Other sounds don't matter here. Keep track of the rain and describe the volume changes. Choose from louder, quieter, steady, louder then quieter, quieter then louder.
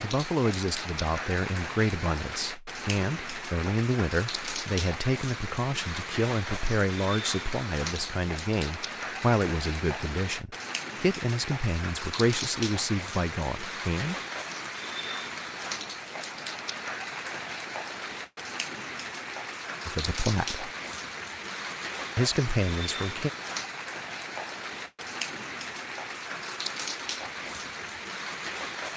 steady.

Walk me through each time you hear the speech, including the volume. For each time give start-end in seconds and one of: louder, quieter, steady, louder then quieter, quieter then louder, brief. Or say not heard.
0.0-14.2 steady
19.9-20.6 brief
22.1-23.3 brief.